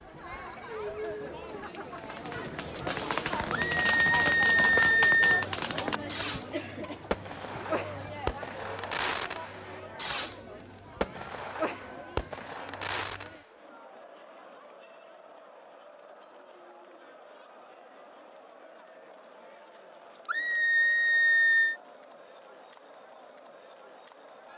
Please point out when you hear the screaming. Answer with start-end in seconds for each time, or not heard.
3.5-5.5, 20.2-21.8.